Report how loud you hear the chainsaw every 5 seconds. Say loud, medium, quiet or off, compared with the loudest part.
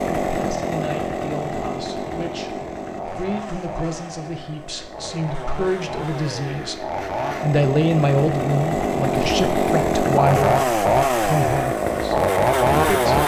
medium, medium, loud.